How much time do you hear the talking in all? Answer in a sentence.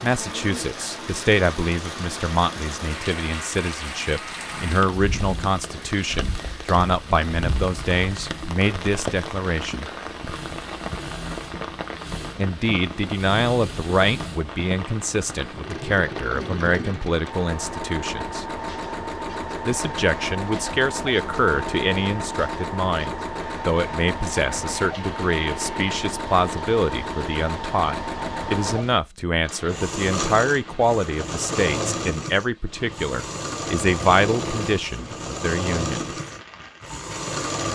The talking can be heard for 32 seconds in total.